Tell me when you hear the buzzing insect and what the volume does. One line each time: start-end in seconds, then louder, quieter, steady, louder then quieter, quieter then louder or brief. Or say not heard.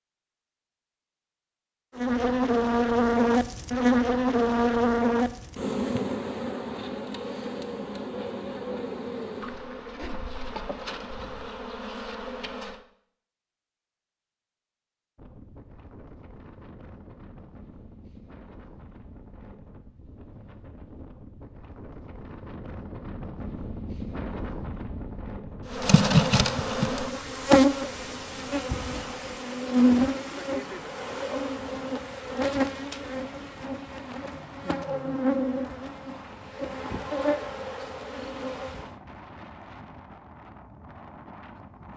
1.9-12.8 quieter
25.6-39.0 quieter.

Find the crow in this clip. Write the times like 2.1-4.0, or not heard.
not heard.